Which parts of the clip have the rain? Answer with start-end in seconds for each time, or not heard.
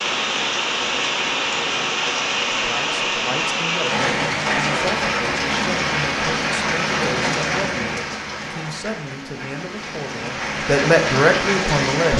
0.0-12.1.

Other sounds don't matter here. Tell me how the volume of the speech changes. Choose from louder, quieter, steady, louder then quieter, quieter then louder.
louder.